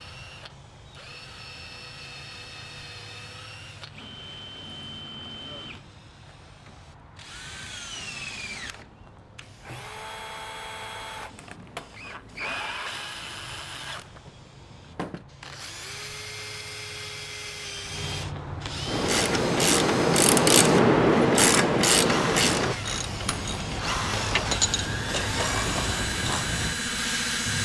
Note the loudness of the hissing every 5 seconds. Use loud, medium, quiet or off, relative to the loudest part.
quiet, quiet, quiet, medium, loud, loud.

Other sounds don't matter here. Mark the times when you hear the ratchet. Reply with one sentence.
You can hear the ratchet from 18.9 to 26.4 s.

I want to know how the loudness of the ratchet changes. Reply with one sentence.
The volume of the ratchet goes down.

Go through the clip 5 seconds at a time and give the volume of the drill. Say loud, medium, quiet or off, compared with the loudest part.
quiet, medium, medium, medium, loud, loud.